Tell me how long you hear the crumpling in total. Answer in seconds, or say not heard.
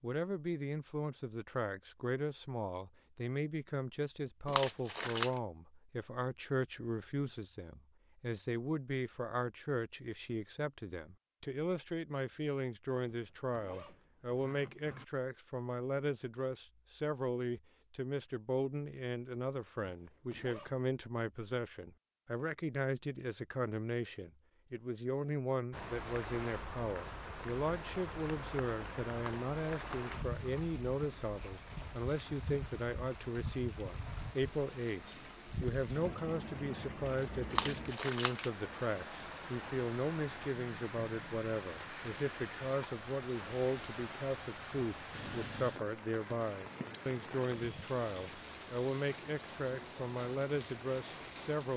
3 s.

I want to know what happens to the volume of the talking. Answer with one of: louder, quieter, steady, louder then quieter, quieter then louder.
steady.